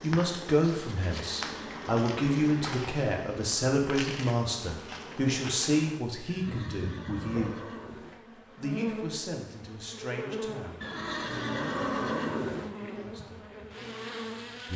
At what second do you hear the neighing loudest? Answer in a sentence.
The volume of the neighing peaks at 12 seconds.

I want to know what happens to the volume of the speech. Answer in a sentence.
The volume of the speech goes down.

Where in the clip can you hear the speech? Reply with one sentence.
You can hear the speech from 0.0 to 7.5 s and from 8.3 to 13.4 s.